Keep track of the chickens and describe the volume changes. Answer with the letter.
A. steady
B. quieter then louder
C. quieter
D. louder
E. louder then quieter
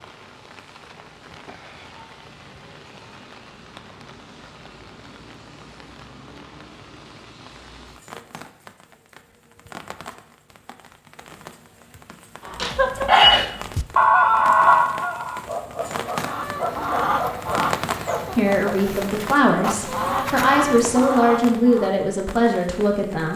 B.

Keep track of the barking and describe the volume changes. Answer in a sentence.
The volume of the barking goes down.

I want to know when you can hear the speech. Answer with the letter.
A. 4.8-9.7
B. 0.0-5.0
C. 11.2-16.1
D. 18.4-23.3
D.